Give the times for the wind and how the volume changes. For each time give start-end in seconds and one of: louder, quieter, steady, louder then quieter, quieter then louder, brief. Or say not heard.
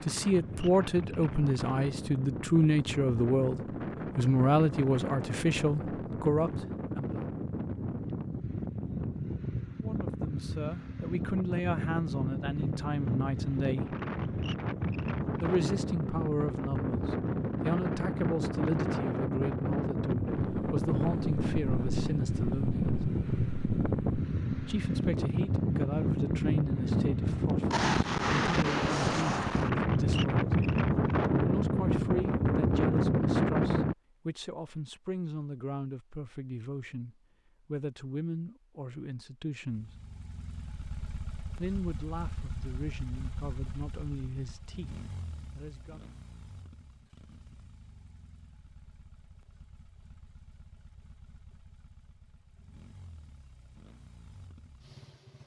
0.0-34.0 louder.